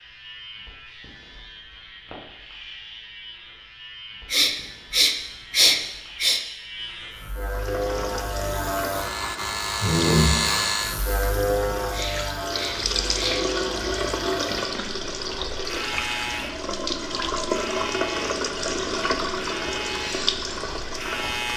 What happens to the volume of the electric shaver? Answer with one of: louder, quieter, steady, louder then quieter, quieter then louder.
louder then quieter.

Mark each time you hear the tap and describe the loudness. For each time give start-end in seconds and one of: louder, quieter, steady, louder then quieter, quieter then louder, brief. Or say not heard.
7.5-21.5 louder.